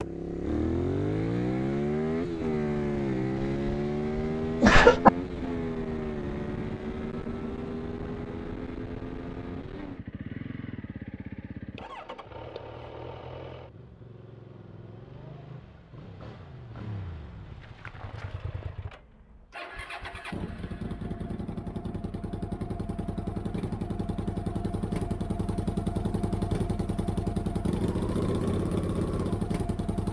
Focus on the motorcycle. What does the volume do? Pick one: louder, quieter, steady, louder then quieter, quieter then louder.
quieter then louder.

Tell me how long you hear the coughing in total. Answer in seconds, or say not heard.
2 s.